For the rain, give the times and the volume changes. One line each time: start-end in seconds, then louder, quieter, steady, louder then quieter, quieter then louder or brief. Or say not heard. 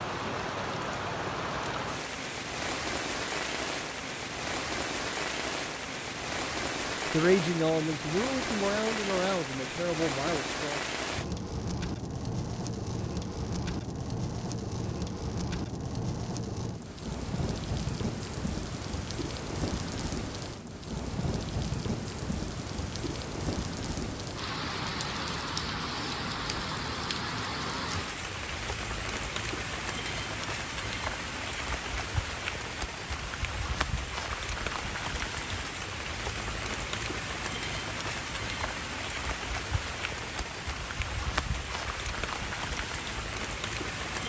0.0-44.2 steady.